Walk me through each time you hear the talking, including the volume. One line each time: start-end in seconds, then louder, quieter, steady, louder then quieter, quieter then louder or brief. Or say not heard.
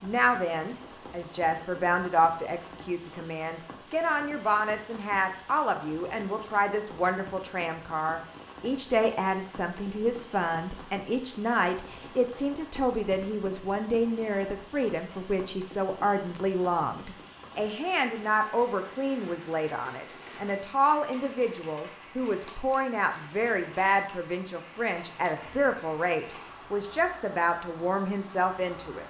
0.0-29.0 steady.